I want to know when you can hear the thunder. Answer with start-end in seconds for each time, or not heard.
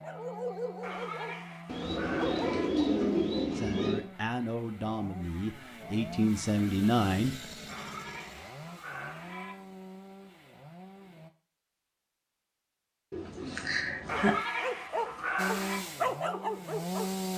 not heard.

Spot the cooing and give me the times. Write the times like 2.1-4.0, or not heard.
1.6-4.0, 13.1-14.3.